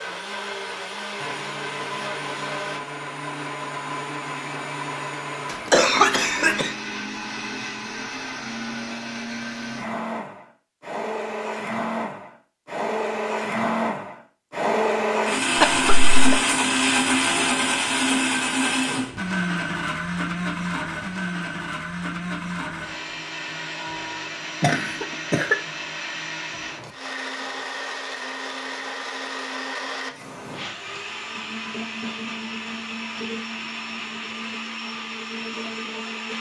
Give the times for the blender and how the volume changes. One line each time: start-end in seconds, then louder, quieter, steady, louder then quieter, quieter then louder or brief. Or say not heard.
0.0-36.3 louder then quieter.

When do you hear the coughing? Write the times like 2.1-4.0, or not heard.
5.5-6.8, 15.6-16.1, 24.6-25.6.